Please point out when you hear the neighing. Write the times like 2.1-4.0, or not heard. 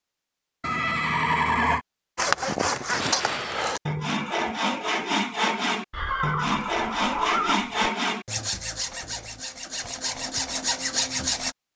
0.6-1.8, 5.9-7.7.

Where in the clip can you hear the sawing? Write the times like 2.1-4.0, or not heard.
2.1-11.6.